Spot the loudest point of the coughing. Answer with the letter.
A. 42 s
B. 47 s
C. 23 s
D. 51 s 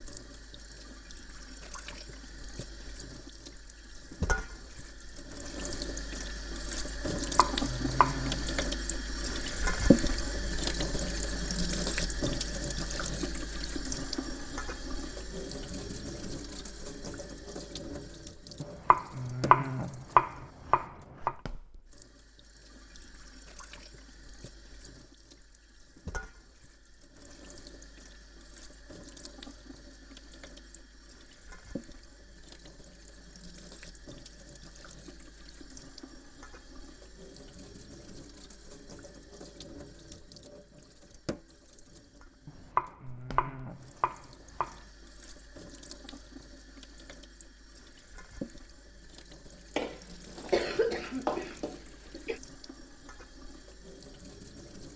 D.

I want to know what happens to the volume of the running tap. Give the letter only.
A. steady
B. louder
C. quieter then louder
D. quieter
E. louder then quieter
D.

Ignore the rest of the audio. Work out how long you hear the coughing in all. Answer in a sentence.
The coughing can be heard for 3 seconds in total.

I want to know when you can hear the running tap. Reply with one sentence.
The running tap can be heard from 0.0 to 54.9 s.